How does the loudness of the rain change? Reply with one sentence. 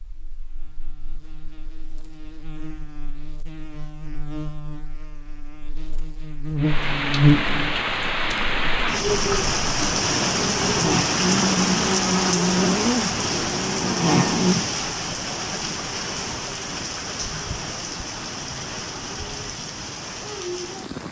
The loudness of the rain goes down.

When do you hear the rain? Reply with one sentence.
You can hear the rain from 6.5 to 21.0 s.